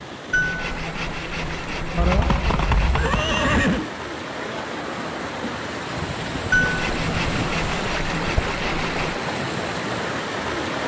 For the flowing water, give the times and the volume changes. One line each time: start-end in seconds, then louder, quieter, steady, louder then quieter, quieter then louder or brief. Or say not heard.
0.0-10.8 louder.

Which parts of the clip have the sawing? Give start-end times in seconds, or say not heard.
0.3-3.1, 6.5-9.2.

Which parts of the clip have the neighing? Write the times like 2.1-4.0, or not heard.
1.9-3.9, 6.0-7.5.